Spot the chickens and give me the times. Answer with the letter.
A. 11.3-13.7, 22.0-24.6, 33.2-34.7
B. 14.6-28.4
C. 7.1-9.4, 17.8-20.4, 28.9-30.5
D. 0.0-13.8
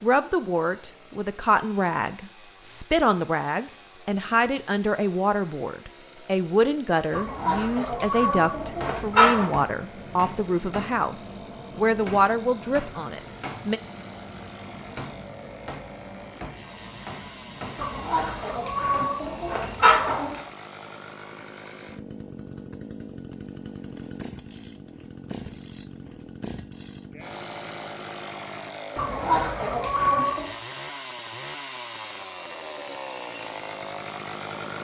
C.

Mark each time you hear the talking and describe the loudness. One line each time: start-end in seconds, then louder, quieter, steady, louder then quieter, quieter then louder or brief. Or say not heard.
0.0-13.8 steady.